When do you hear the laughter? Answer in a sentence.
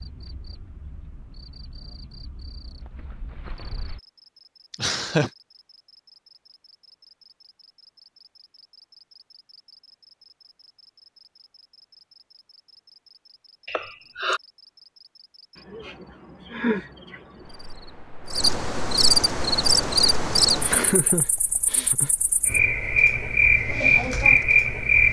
You can hear the laughter from 4.7 to 5.3 s, from 13.7 to 14.4 s and from 20.6 to 22.1 s.